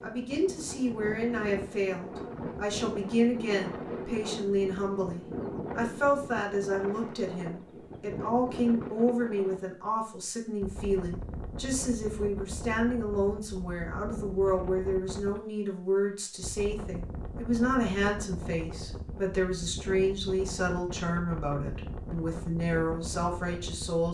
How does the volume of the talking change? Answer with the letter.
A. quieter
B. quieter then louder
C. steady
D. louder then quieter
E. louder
C.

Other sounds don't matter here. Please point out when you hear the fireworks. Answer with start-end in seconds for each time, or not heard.
not heard.